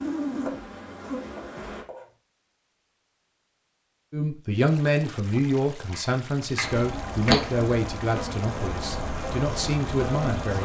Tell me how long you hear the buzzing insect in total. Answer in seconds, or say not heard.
6 s.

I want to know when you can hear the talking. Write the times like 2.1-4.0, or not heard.
4.1-10.6.